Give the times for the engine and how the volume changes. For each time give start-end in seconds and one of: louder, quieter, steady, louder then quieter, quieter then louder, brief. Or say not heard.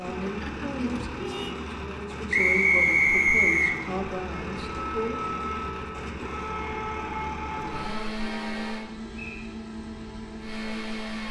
0.0-11.2 steady.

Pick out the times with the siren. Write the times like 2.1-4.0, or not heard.
4.3-8.1.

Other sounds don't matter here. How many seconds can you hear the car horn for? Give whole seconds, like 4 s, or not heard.
2 s.